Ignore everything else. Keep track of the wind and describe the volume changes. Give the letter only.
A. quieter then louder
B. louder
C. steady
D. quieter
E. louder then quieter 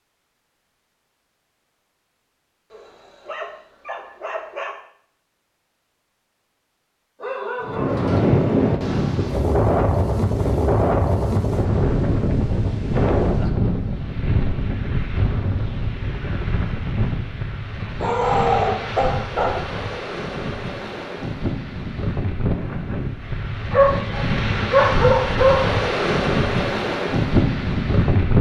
A.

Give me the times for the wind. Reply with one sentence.
The wind can be heard from 7.6 to 28.3 s.